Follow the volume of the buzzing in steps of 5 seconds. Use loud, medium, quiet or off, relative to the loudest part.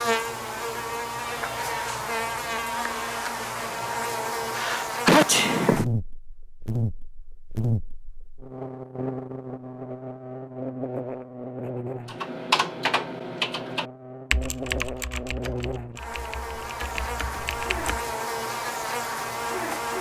loud, loud, medium, loud.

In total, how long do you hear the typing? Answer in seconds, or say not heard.
6 s.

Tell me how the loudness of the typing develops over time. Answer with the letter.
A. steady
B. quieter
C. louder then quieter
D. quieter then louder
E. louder
D.